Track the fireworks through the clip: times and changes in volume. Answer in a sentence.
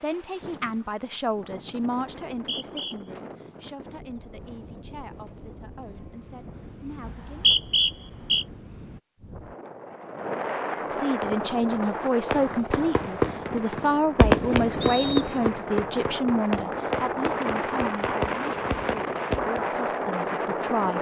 The fireworks can be heard from 11.2 to 19.6 s, getting louder then quieter.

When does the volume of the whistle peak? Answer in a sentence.
The volume of the whistle peaks at 8 seconds.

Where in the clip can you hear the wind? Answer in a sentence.
You can hear the wind from 0.0 to 20.9 s.